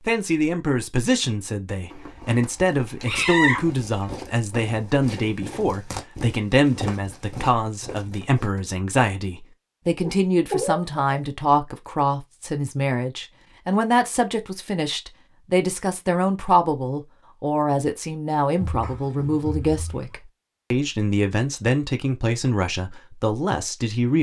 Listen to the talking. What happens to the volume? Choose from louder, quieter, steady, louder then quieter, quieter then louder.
steady.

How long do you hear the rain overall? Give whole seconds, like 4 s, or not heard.
not heard.